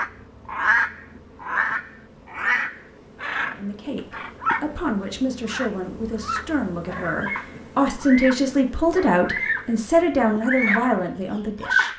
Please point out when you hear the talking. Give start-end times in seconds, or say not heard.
3.5-11.9.